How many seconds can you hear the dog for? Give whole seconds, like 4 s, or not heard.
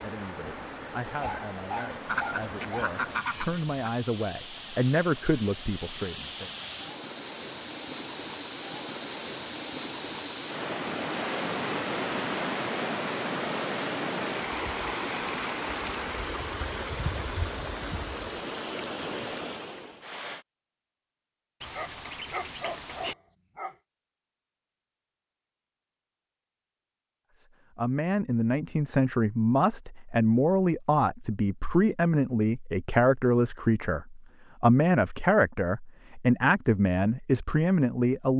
4 s.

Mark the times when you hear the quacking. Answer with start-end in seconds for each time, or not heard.
2.0-3.9, 21.6-23.1.